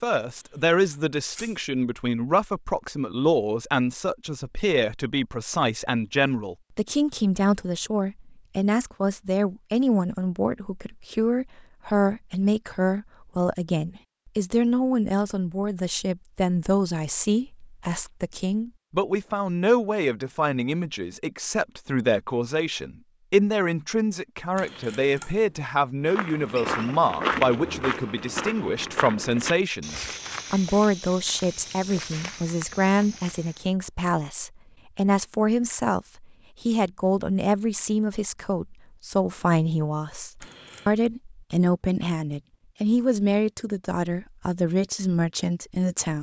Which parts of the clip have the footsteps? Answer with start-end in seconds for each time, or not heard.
26.1-33.7.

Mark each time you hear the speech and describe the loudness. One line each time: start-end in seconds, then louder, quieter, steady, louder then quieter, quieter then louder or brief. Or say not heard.
0.0-46.1 steady.